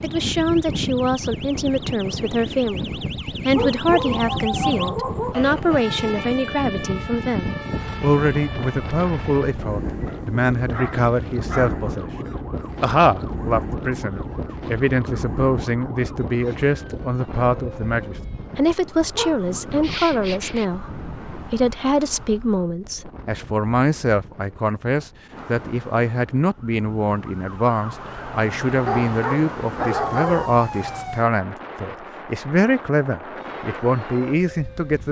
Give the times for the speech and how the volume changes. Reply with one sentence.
The speech can be heard from 0.0 to 35.0 s, at a steady volume.